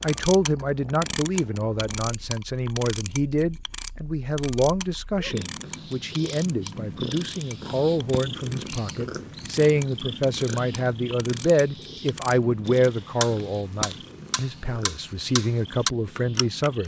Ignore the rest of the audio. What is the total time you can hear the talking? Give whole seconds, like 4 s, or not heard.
17 s.